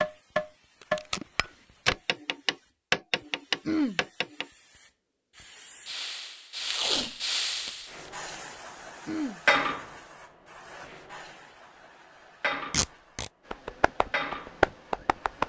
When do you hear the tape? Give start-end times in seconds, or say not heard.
0.8-1.9, 6.6-8.1, 12.7-13.3.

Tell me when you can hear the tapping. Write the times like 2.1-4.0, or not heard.
0.0-4.5, 13.5-15.4.